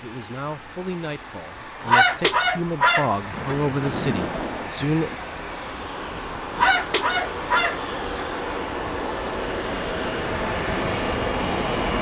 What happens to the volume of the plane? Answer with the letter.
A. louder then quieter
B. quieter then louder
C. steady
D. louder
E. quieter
D.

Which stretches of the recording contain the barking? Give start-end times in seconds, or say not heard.
1.8-3.5, 6.5-8.2.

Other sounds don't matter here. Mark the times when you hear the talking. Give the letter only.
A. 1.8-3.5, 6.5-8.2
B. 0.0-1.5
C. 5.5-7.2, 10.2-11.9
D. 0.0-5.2
D.